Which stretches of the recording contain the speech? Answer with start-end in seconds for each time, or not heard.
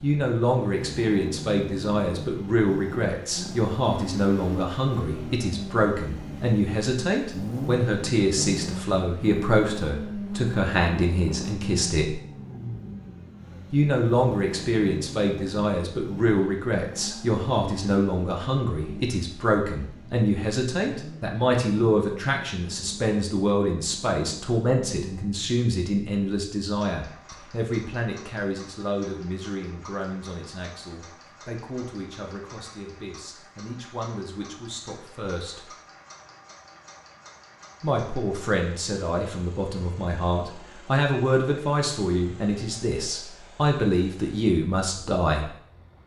0.0-12.2, 13.7-35.7, 37.8-45.5.